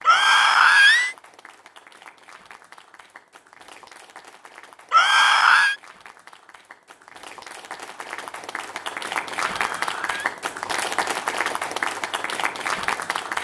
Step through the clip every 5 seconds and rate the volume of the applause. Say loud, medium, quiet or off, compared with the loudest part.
quiet, medium, loud.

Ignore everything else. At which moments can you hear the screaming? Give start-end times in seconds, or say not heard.
0.1-1.1, 4.9-5.8, 9.6-10.3.